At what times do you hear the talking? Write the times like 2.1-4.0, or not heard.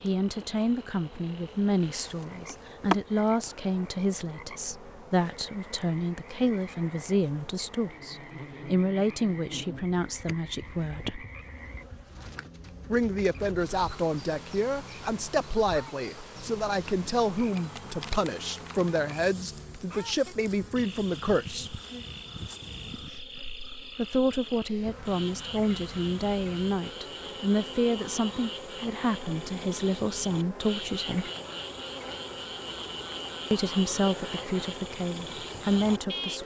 0.0-11.2, 12.9-21.8, 23.9-31.3, 33.5-36.4.